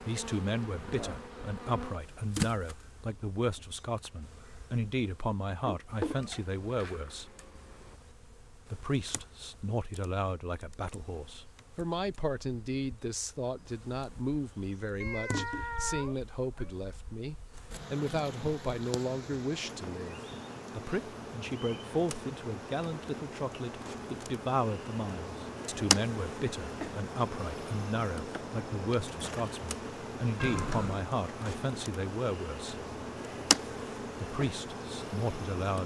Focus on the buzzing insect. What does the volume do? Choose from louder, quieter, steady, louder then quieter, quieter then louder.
quieter then louder.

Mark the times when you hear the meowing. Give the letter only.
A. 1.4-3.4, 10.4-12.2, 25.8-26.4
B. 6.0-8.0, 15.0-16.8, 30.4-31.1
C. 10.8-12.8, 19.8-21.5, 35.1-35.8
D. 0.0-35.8
B.